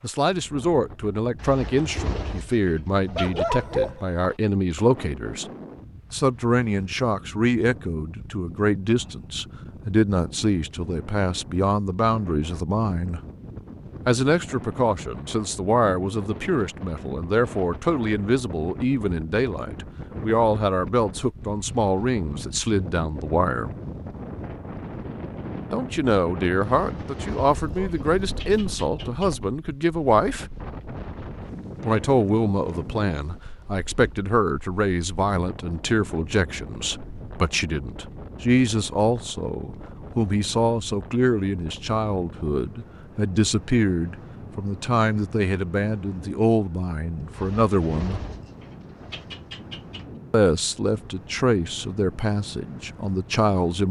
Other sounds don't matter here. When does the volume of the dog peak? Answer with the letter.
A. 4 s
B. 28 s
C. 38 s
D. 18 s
A.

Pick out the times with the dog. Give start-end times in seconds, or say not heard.
3.1-4.3, 27.4-28.6.